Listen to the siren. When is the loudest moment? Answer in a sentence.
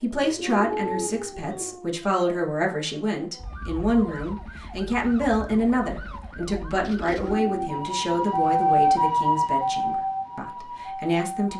The loudest moment of the siren is at 9 seconds.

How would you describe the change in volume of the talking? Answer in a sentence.
The volume of the talking goes down.